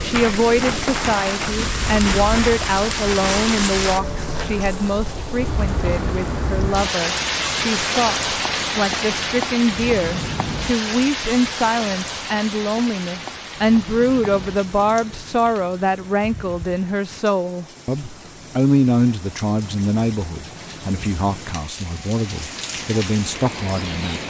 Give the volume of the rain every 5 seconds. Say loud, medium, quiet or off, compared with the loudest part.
loud, loud, medium, quiet, medium.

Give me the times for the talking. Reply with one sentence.
You can hear the talking from 0.0 to 24.2 s.